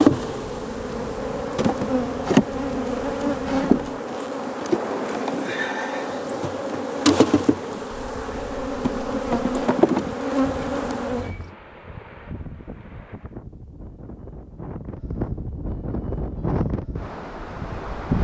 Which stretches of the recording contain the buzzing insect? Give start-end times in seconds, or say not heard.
0.0-11.5.